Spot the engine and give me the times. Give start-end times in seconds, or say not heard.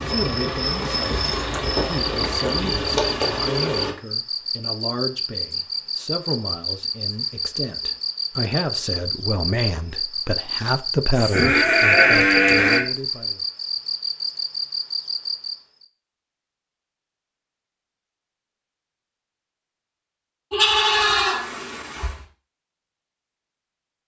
0.0-4.0.